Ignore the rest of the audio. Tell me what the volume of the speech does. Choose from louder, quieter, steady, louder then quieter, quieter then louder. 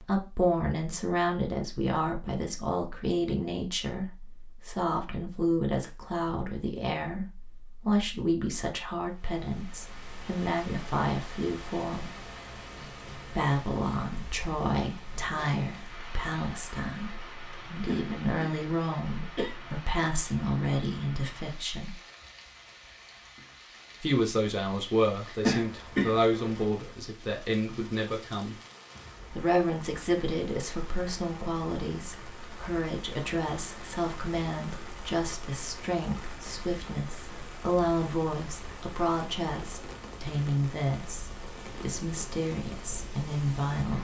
steady.